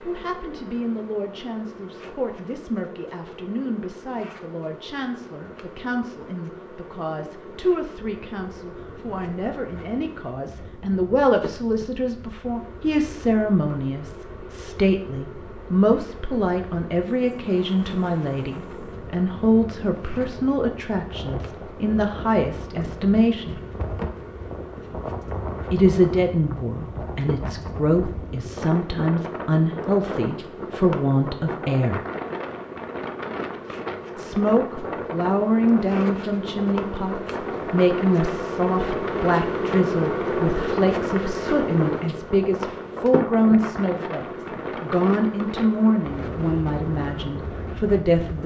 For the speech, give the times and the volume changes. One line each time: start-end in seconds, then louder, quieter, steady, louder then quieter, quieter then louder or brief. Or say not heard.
0.0-23.6 louder
25.7-32.0 steady
34.1-48.4 steady.